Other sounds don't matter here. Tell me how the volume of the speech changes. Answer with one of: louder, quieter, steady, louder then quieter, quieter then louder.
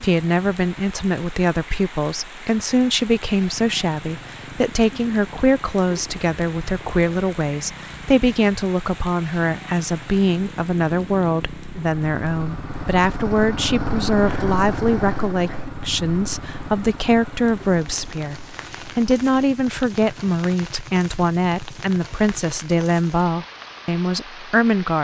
steady.